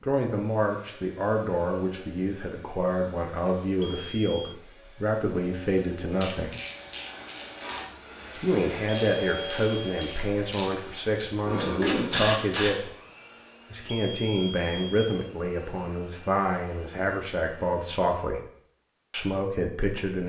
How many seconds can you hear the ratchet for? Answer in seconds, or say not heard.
7 s.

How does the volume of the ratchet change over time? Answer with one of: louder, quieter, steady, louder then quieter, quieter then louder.
quieter then louder.